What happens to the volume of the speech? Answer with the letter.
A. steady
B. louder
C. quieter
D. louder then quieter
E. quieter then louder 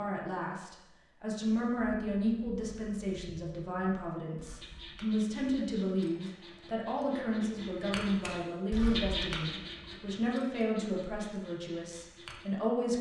A.